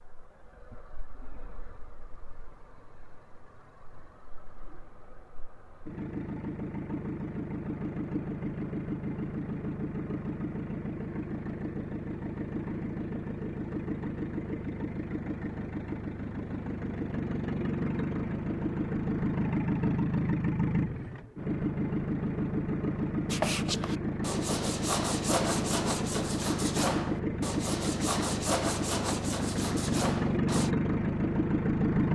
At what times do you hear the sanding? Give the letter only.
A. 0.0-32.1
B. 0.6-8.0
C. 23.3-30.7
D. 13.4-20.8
C.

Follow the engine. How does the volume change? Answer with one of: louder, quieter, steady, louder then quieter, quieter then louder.
louder.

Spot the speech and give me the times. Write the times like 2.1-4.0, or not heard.
not heard.